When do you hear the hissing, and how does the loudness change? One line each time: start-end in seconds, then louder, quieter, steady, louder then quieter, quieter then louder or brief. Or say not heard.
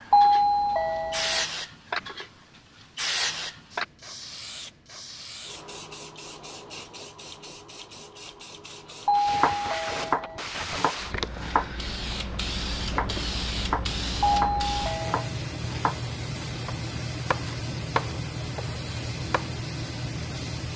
0.0-20.7 quieter then louder.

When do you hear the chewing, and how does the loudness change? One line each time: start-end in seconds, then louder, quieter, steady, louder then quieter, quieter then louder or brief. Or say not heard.
not heard.